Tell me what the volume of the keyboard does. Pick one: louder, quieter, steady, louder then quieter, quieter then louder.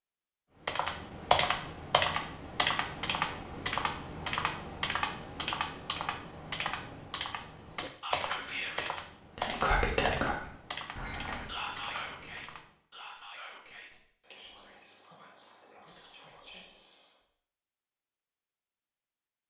quieter.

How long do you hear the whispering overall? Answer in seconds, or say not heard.
10 s.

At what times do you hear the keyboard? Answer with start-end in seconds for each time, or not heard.
0.7-12.7.